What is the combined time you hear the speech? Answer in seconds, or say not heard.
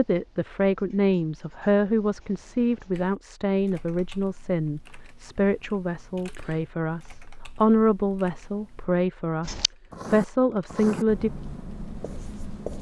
11 s.